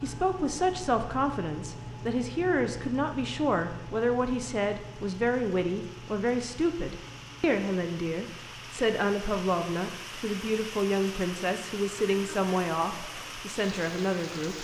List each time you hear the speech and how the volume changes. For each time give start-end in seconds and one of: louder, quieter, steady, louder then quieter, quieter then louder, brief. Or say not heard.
0.0-14.5 steady.